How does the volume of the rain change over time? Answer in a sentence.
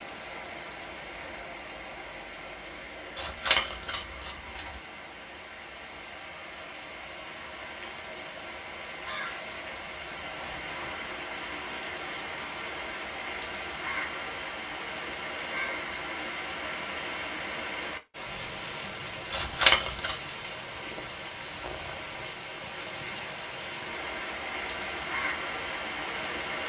The volume of the rain goes up.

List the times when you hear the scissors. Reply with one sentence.
You can hear the scissors from 3.1 to 4.7 s and from 19.3 to 20.1 s.